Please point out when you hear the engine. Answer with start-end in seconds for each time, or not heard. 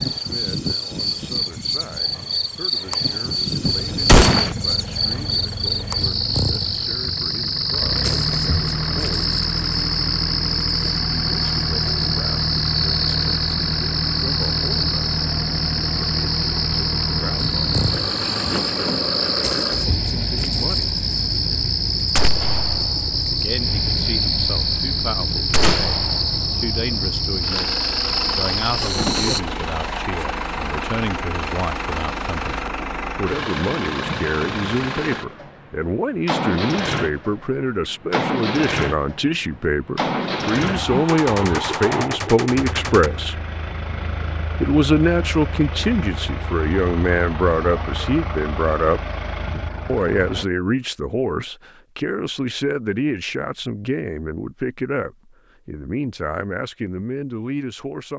3.6-50.5.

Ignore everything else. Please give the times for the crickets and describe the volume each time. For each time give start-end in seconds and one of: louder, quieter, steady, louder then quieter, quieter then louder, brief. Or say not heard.
0.0-29.4 steady.